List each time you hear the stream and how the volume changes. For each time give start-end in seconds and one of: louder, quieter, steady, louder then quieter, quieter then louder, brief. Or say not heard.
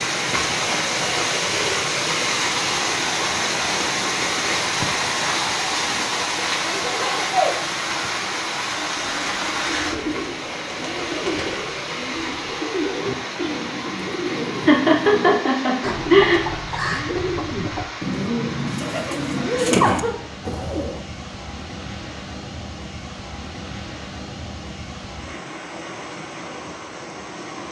0.0-27.6 quieter.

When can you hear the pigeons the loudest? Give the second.
20 s.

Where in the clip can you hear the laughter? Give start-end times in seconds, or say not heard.
6.7-7.5, 14.7-16.4, 19.4-20.1.